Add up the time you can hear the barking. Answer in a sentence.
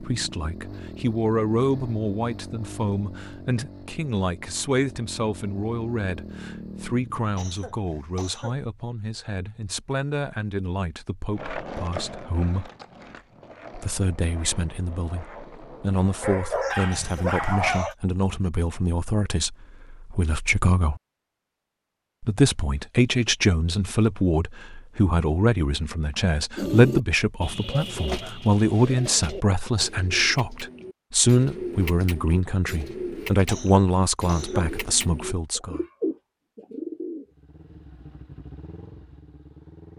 You can hear the barking for 2 seconds altogether.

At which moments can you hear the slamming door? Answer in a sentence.
The slamming door can't be heard in this clip.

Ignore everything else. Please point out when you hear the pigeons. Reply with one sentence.
You can hear the pigeons from 26.6 to 37.8 s.